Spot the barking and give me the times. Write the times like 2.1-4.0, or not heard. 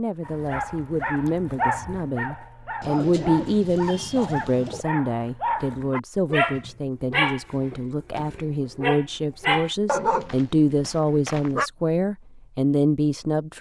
0.2-11.7.